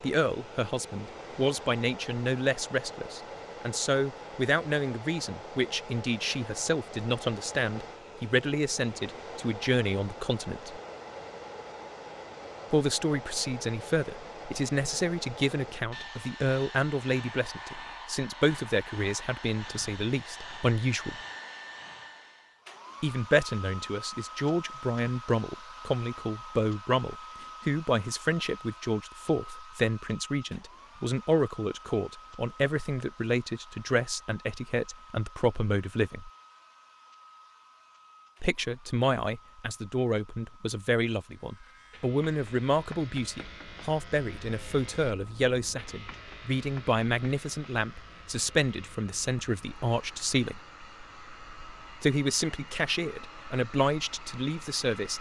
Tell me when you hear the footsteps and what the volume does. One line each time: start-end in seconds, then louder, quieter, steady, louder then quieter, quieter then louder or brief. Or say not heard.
not heard.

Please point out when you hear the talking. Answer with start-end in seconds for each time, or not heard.
0.0-10.8, 12.7-21.1, 23.0-36.3, 38.4-50.6, 52.0-55.1.